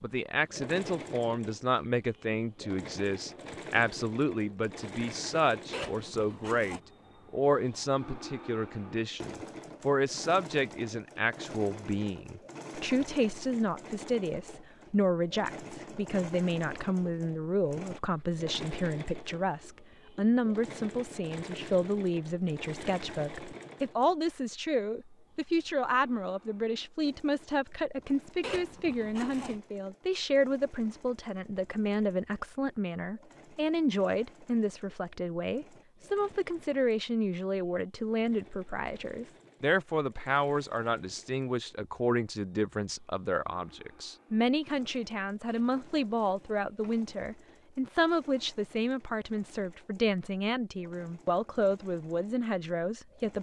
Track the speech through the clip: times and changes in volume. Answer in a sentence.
The speech can be heard from 0.0 to 53.3 s, at a steady volume.